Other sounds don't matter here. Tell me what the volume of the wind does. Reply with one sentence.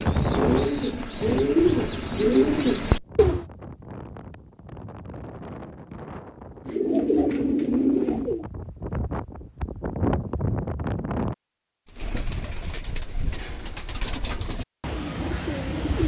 The volume of the wind goes down, then up.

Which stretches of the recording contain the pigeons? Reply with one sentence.
The pigeons can be heard from 0.0 to 3.5 s, from 6.7 to 8.4 s and from 11.8 to 16.0 s.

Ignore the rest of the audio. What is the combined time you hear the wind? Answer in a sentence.
You can hear the wind for 11 seconds altogether.